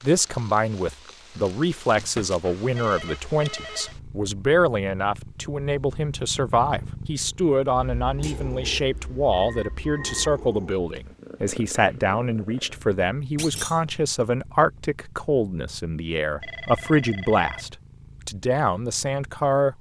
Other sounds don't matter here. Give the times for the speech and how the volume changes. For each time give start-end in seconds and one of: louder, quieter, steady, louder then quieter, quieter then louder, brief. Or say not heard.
0.0-19.7 steady.